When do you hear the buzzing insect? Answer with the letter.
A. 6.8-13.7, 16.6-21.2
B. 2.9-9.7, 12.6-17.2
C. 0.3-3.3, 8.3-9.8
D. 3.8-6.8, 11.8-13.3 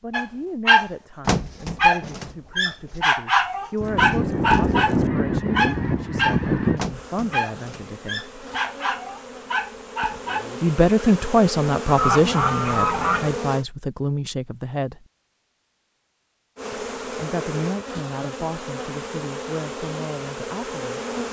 A.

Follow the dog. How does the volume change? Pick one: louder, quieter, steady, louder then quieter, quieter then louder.
quieter.